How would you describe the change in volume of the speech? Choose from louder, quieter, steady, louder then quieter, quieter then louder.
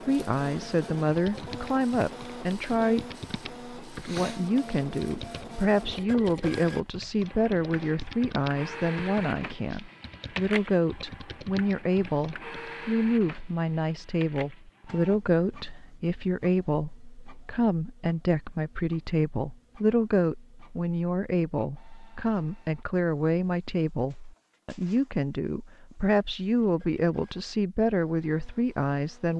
steady.